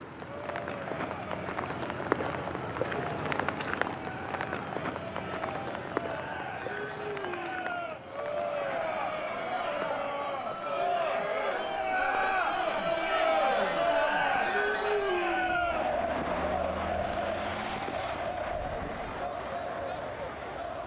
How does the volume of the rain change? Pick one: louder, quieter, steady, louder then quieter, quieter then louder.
quieter.